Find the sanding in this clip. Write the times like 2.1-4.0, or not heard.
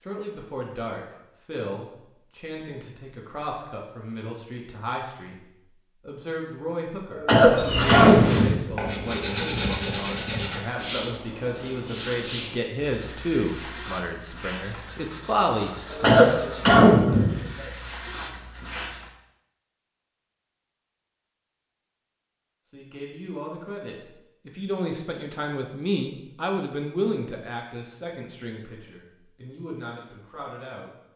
7.5-19.1.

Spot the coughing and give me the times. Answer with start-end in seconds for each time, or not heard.
7.1-8.6, 15.9-17.4.